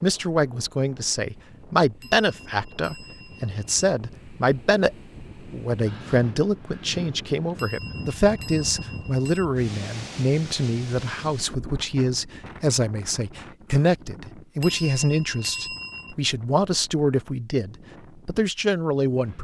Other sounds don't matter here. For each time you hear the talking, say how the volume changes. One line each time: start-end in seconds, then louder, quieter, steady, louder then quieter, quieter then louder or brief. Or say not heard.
0.0-19.3 steady.